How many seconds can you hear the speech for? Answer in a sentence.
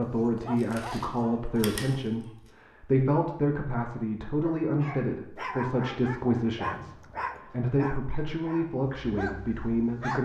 You can hear the speech for 10 seconds altogether.